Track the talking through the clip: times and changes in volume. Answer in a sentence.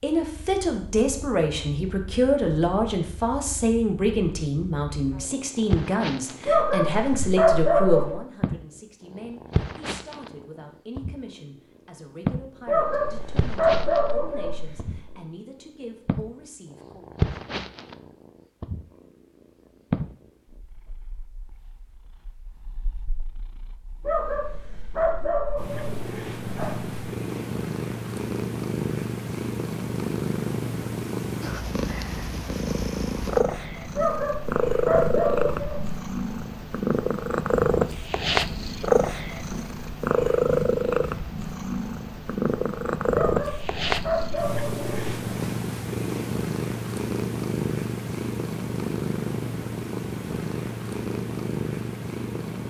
The talking can be heard from 0.0 to 17.1 s, getting quieter.